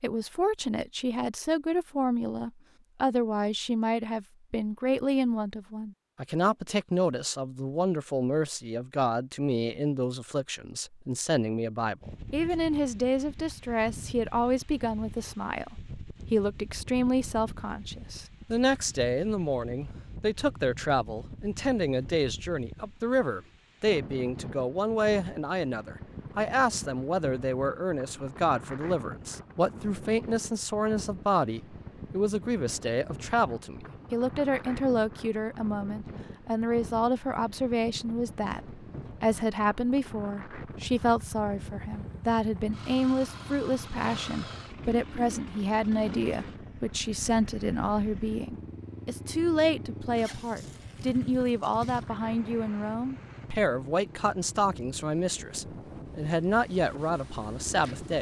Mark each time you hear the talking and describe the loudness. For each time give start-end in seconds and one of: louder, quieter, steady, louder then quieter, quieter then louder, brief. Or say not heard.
0.0-58.1 steady.